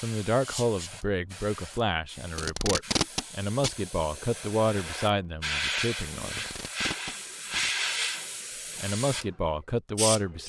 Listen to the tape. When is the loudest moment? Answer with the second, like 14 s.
3 s.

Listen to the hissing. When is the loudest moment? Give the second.
8 s.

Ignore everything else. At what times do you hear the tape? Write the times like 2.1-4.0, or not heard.
2.4-3.7, 6.2-7.7.